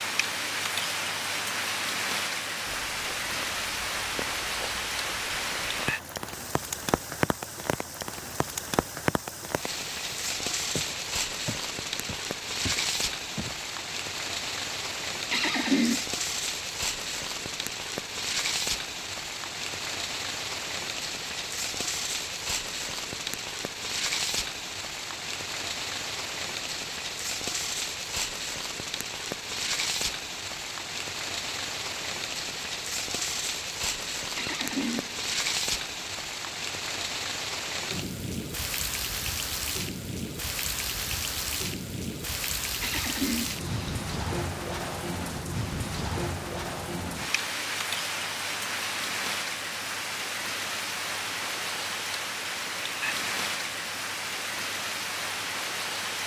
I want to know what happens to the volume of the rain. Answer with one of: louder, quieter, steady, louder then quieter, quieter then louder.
steady.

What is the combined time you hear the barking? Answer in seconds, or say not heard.
not heard.